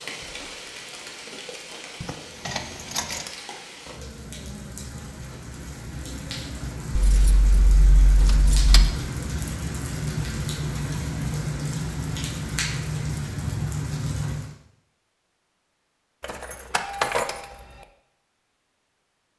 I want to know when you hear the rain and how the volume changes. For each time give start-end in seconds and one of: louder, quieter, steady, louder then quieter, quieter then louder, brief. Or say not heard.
0.0-14.6 louder.